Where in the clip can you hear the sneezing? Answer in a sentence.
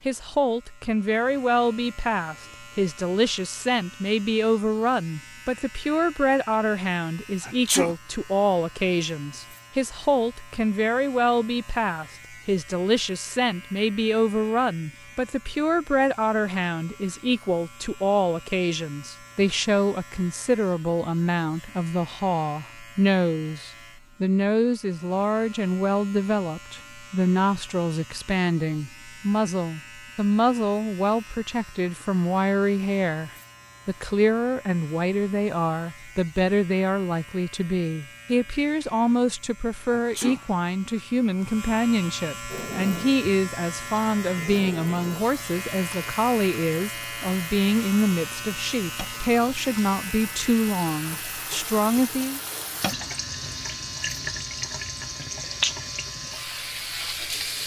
You can hear the sneezing from 7.4 to 8.0 s and from 39.9 to 40.4 s.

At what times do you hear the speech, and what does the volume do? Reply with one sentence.
The speech can be heard from 0.1 to 52.4 s, at a steady volume.